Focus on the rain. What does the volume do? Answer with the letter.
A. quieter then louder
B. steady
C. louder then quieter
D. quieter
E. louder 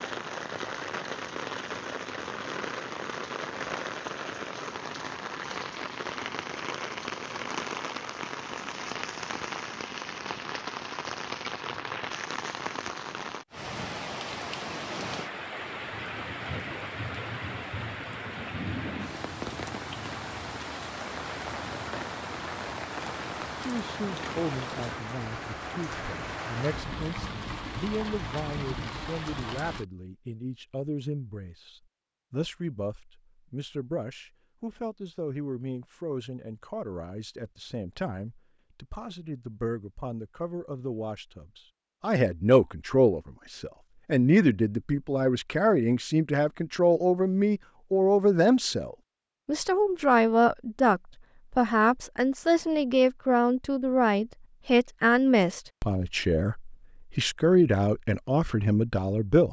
B.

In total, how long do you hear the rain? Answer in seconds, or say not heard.
30 s.